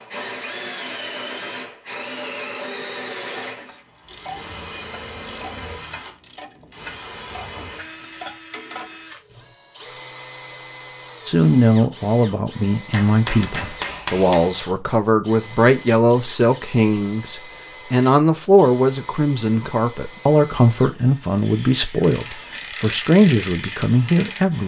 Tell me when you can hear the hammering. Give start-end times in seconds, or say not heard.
12.9-14.6.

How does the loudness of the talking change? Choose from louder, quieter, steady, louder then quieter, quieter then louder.
steady.